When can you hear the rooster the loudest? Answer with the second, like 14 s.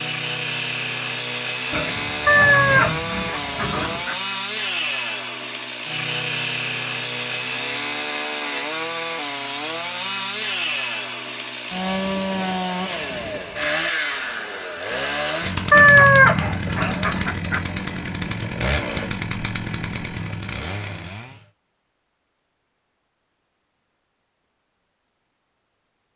16 s.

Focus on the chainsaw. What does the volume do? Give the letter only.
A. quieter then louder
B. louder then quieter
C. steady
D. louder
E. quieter
C.